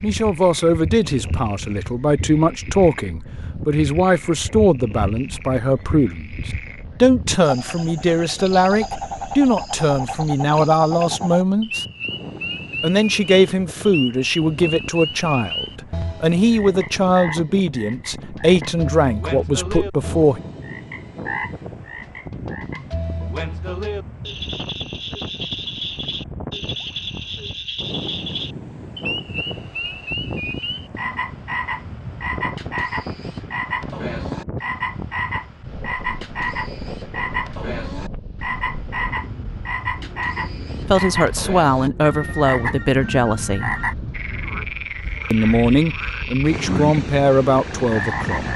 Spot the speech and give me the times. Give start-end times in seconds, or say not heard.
0.0-11.8, 12.8-20.4, 40.9-43.8, 45.3-48.5.